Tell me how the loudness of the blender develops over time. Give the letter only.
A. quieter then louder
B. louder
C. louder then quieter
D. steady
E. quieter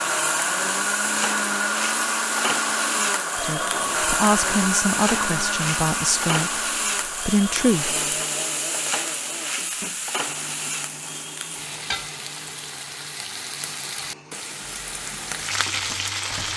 E.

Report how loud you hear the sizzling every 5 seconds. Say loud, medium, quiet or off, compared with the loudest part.
loud, loud, medium, loud.